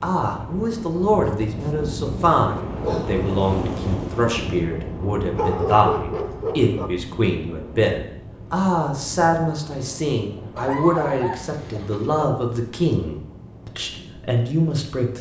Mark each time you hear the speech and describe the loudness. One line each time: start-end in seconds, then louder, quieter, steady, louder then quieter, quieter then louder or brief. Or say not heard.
0.0-15.1 steady.